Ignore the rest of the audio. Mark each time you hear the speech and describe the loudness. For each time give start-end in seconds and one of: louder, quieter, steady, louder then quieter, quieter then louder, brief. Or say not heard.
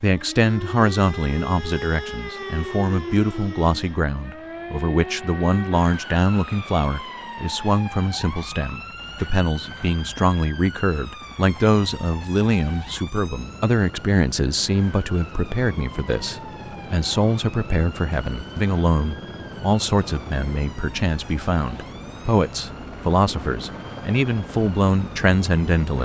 0.0-26.0 steady.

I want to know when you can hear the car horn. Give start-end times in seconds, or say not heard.
not heard.